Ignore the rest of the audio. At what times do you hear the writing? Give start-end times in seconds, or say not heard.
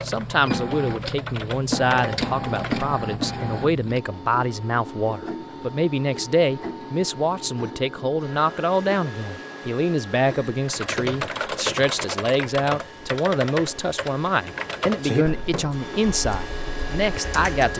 not heard.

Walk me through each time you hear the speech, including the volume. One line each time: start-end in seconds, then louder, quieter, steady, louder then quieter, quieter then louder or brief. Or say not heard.
0.1-17.7 steady.